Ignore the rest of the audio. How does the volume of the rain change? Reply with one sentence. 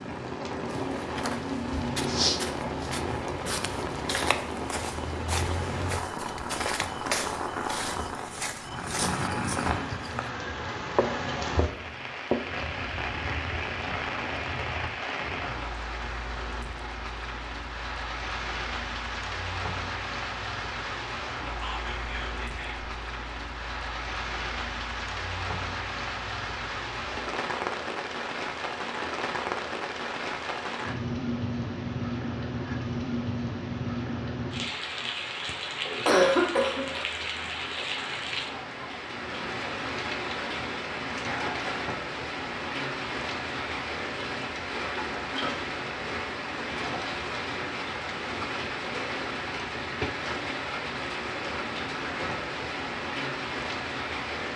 The volume of the rain stays about the same.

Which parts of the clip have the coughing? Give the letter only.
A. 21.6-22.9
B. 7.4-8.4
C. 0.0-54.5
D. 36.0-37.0
D.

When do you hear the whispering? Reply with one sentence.
You can hear the whispering from 21.6 to 22.9 s.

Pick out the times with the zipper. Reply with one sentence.
The zipper can't be heard in this clip.